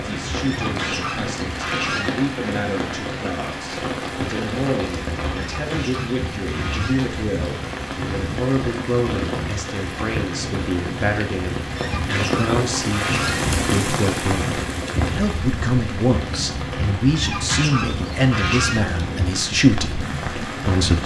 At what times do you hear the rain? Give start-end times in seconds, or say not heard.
0.0-21.0.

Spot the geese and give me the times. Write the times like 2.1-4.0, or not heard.
0.5-2.1, 5.3-7.0, 11.8-13.4, 17.1-18.9.